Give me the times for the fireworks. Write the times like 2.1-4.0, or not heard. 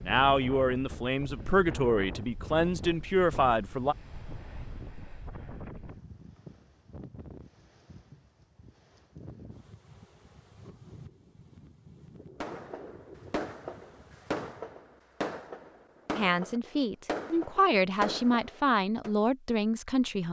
12.4-19.1.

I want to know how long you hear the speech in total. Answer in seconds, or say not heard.
8 s.